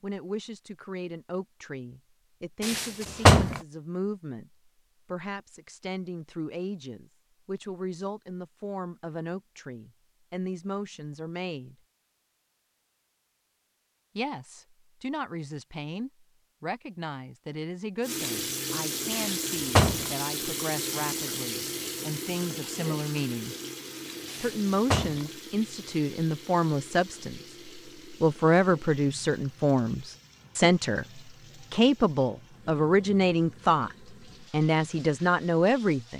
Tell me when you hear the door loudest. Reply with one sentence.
The volume of the door peaks at 3 seconds.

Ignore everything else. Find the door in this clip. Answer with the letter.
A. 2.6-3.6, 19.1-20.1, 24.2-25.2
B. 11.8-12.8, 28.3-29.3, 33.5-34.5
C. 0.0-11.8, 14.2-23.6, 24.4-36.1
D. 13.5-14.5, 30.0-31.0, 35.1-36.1
A.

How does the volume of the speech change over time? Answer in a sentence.
The loudness of the speech goes up.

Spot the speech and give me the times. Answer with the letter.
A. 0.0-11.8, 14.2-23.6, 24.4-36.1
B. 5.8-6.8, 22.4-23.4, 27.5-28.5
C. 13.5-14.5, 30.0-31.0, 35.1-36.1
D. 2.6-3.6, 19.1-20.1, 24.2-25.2
A.